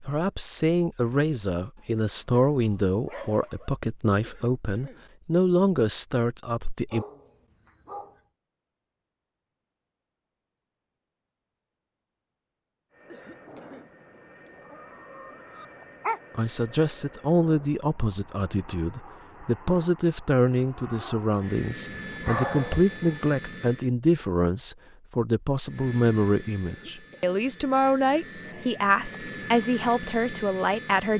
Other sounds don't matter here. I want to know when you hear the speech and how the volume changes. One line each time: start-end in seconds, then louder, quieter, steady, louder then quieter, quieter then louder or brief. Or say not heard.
0.0-7.0 steady
16.4-31.1 steady.